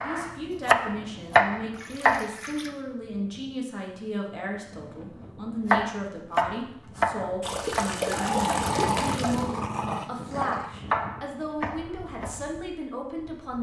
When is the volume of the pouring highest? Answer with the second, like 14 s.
8 s.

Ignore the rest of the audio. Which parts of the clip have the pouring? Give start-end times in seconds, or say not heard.
1.7-2.8, 7.4-9.5.